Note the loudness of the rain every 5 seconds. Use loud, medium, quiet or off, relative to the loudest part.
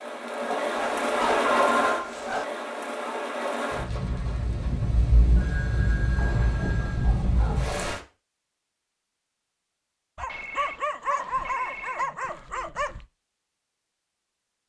loud, loud, off.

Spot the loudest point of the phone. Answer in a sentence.
The loudest moment of the phone is at 2 seconds.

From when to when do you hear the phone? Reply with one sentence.
You can hear the phone from 1.4 to 2.1 s, from 5.3 to 7.2 s and from 10.2 to 12.1 s.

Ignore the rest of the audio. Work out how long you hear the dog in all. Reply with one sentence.
You can hear the dog for 6 seconds altogether.